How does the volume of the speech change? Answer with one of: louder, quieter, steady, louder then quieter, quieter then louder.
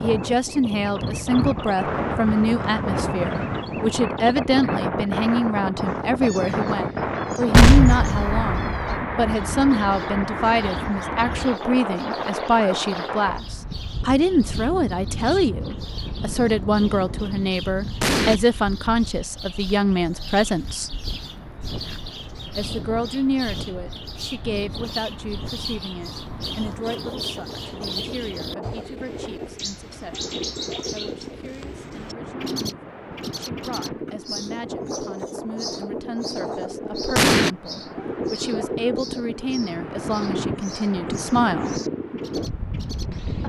quieter then louder.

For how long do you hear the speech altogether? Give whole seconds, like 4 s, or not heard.
40 s.